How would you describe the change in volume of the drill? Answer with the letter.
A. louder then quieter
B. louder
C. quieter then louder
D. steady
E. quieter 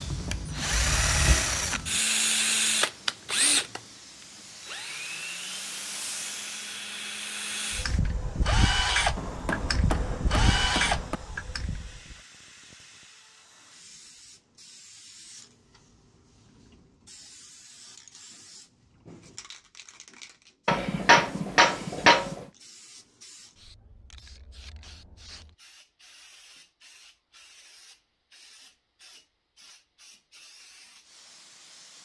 C.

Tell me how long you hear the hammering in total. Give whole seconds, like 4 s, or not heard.
4 s.